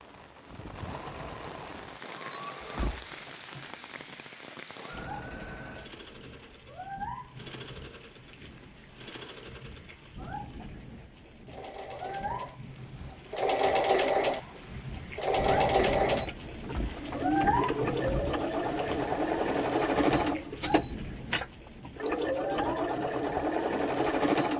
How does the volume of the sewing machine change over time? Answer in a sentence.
The volume of the sewing machine goes up.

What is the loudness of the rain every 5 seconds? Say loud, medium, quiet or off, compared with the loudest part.
medium, medium, medium, loud, medium.